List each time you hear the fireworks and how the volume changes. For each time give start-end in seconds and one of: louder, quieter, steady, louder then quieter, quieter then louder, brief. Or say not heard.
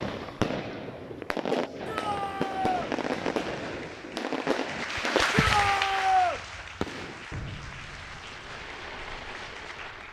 0.0-10.0 quieter.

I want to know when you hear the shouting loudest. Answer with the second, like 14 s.
6 s.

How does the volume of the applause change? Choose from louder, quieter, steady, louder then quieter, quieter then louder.
louder then quieter.